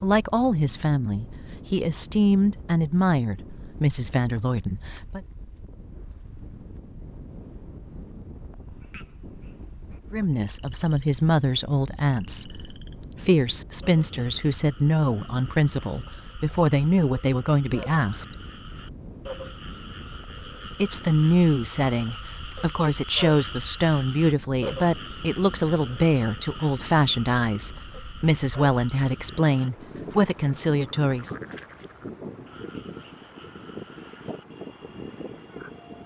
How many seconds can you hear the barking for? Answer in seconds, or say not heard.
not heard.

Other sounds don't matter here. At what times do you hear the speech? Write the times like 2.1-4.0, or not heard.
0.0-5.2, 10.1-18.2, 20.8-31.4.